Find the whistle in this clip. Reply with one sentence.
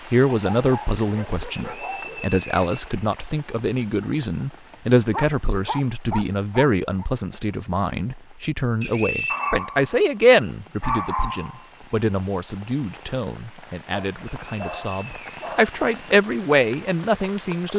You can hear the whistle from 1.6 to 3.0 s, from 8.8 to 9.6 s and from 14.3 to 15.5 s.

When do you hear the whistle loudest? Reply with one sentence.
The volume of the whistle peaks at 9 seconds.